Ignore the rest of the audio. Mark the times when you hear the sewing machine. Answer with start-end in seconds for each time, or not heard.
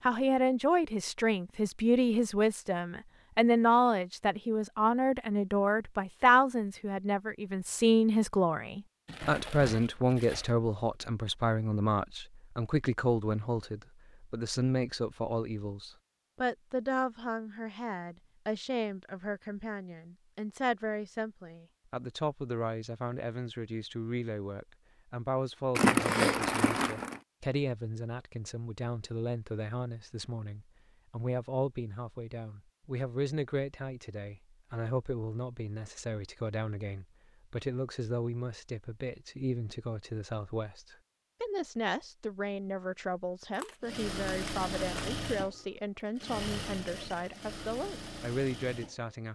43.8-49.1.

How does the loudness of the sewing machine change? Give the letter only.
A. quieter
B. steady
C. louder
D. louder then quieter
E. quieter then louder
A.